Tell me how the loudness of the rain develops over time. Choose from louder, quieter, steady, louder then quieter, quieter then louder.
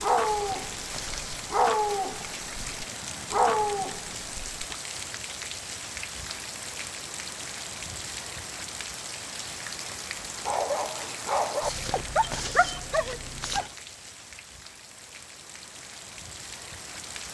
quieter.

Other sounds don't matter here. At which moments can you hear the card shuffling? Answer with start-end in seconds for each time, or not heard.
0.2-1.5, 11.6-13.7.